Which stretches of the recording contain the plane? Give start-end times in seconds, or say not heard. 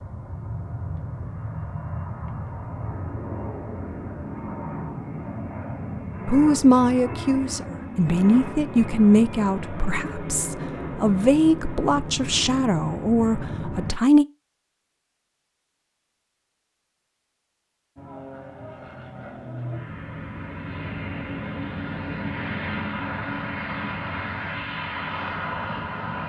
0.0-13.9, 17.9-26.2.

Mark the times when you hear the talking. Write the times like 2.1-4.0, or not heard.
6.2-14.2.